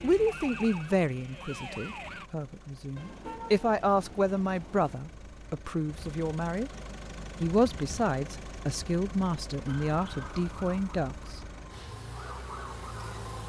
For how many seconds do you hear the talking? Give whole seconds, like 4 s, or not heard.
11 s.